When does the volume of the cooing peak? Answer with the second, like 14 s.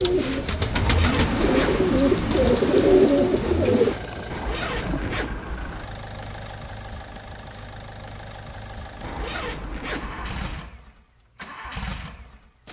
3 s.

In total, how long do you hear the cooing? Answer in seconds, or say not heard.
4 s.